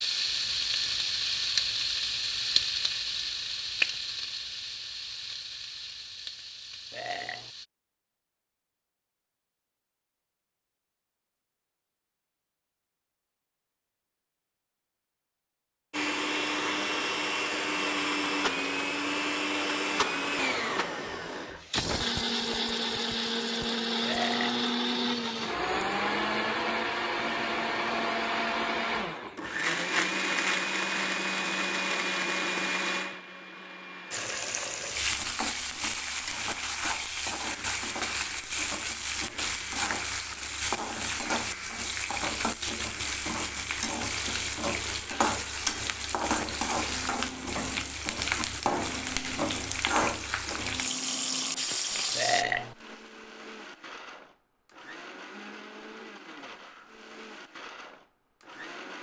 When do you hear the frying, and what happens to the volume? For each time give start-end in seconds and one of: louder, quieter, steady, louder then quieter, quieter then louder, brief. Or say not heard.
0.0-7.7 quieter
34.1-52.5 steady.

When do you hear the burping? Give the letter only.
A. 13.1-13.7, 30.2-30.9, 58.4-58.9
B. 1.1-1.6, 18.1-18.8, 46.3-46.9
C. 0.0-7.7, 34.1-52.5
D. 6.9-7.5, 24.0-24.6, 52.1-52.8
D.